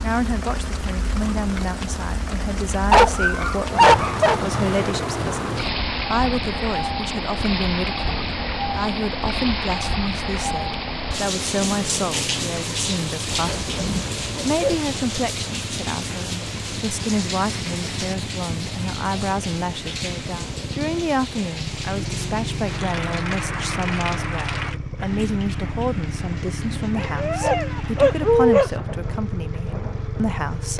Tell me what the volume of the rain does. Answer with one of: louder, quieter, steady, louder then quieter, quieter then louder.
quieter.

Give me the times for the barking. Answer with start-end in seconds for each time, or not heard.
2.9-4.4, 13.2-14.9, 26.9-28.7.